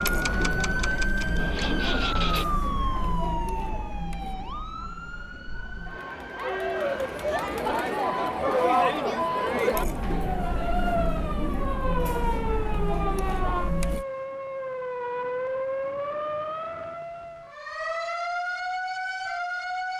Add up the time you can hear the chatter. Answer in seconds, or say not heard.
14 s.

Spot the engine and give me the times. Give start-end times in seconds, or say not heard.
0.0-2.5.